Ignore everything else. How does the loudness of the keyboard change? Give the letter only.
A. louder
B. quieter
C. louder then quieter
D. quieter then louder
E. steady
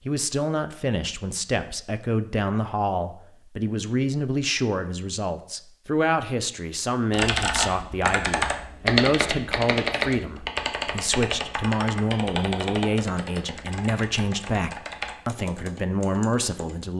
B.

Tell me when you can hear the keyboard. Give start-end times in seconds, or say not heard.
7.1-16.9.